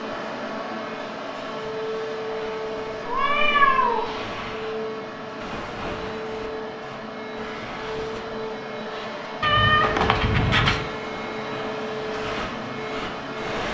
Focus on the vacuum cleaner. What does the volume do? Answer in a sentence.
The loudness of the vacuum cleaner stays about the same.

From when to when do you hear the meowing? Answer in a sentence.
The meowing can be heard from 3.0 to 4.1 s and from 9.4 to 10.8 s.